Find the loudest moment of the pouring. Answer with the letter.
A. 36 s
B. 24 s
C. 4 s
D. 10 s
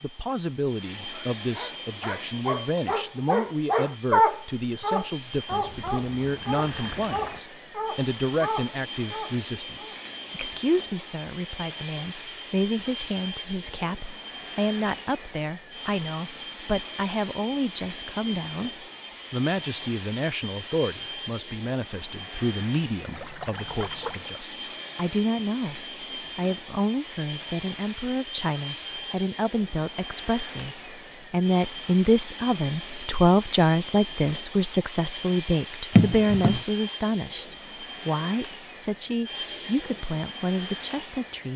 A.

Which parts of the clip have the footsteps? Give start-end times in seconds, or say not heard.
not heard.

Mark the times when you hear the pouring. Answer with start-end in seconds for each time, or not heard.
5.5-7.4, 23.1-24.3, 35.9-36.6.